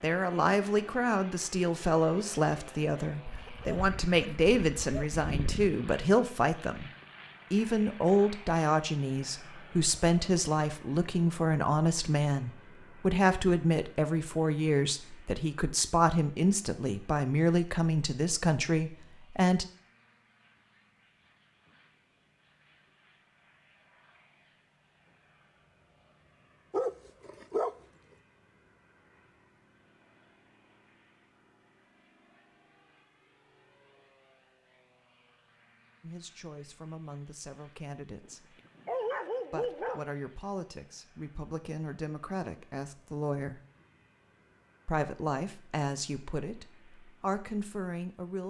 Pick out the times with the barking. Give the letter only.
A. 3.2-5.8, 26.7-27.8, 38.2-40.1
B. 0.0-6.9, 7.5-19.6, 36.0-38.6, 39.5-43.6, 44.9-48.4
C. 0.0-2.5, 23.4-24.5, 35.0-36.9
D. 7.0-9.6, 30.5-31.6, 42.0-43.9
A.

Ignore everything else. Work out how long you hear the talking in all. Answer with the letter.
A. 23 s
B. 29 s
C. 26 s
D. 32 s
B.